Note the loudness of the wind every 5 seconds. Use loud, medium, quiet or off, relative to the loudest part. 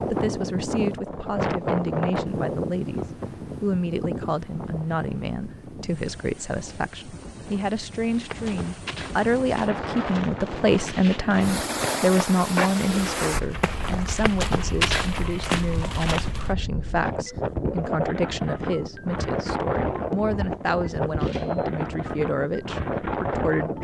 loud, medium, loud, loud, loud.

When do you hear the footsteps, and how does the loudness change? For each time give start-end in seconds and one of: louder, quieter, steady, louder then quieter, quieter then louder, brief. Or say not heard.
8.1-16.5 louder.